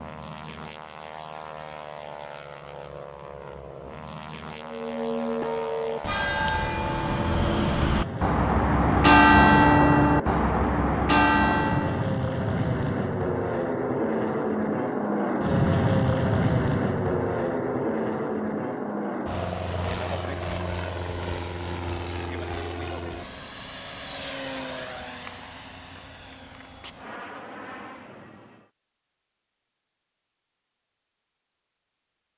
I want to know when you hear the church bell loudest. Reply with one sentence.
The volume of the church bell peaks at 9 seconds.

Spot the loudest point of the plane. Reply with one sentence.
The loudest moment of the plane is at 16 seconds.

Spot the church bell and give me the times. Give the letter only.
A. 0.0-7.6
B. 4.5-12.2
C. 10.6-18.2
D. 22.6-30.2
B.